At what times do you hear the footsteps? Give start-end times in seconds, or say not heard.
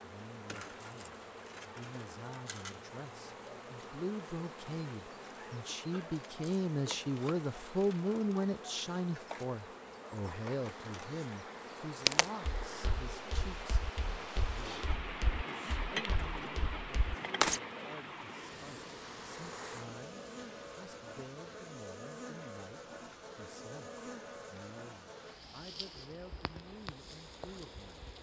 12.1-17.6.